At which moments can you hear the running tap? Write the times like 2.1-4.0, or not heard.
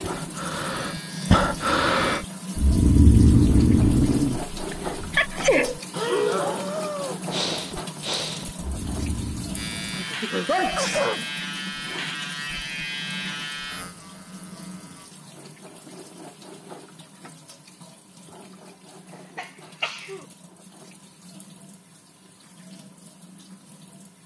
0.0-24.2.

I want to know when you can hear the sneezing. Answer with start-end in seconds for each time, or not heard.
4.7-5.8, 9.9-11.2, 19.4-20.2.